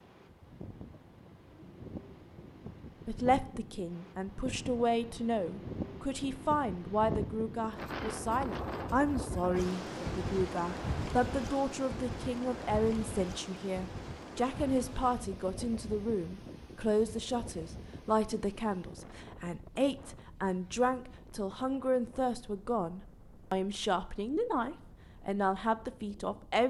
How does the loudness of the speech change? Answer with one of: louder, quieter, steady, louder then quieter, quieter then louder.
steady.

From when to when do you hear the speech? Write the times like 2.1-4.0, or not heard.
3.0-26.6.